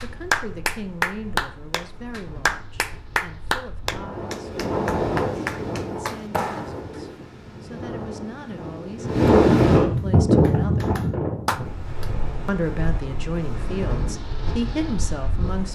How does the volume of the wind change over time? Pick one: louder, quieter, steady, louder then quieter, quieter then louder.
louder then quieter.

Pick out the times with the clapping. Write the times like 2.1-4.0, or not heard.
0.0-6.8, 9.8-12.1.